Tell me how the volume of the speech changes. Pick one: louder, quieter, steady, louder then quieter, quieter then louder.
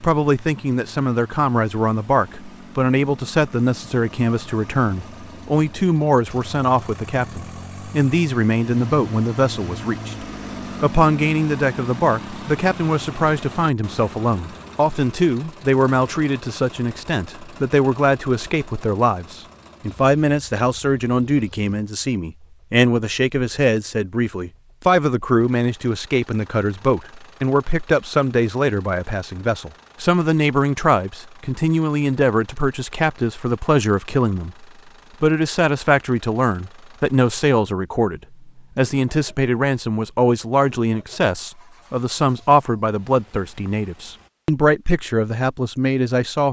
steady.